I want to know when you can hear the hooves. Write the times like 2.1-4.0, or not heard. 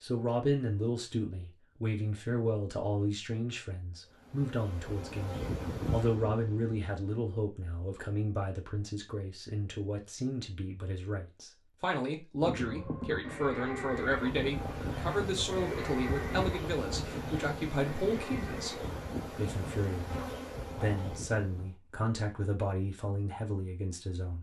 12.4-21.1.